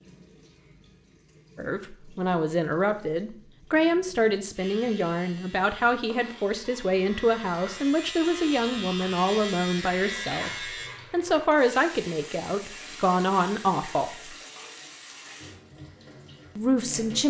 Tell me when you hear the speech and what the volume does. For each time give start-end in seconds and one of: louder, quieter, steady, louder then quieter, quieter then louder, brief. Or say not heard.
1.6-14.3 steady
16.6-17.2 brief.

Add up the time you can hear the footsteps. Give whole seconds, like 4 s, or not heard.
not heard.